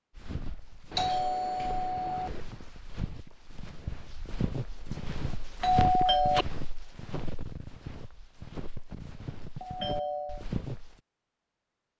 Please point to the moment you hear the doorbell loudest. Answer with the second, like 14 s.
6 s.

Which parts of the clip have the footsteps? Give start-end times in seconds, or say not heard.
0.1-11.0.